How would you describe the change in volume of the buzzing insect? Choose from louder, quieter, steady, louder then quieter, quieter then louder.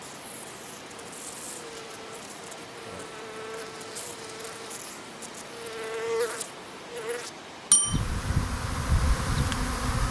louder.